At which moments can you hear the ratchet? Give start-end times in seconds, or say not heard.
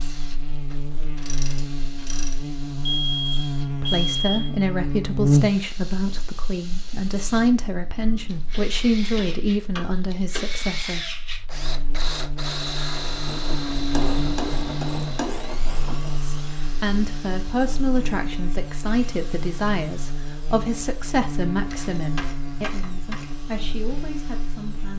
0.7-2.4, 8.3-10.5, 13.2-16.1, 21.7-23.4.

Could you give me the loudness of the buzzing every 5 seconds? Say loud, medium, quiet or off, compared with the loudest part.
medium, loud, medium, medium, medium.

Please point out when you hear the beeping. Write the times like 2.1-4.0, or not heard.
2.9-4.7.